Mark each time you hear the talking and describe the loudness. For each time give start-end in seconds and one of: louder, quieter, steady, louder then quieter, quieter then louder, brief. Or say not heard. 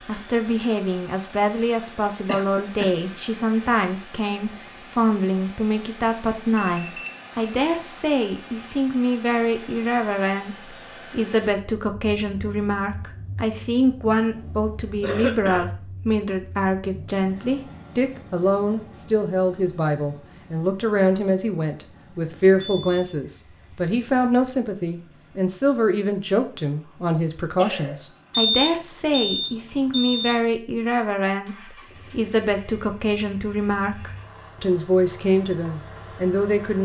0.1-36.8 steady.